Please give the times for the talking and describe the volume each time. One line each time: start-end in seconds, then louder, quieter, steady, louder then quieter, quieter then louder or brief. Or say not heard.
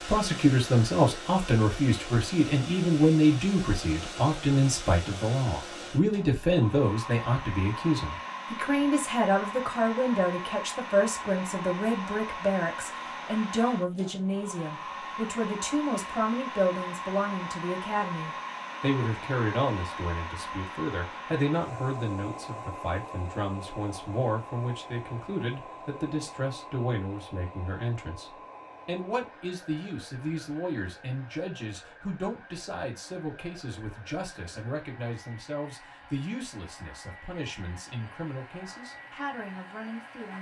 0.0-40.3 quieter.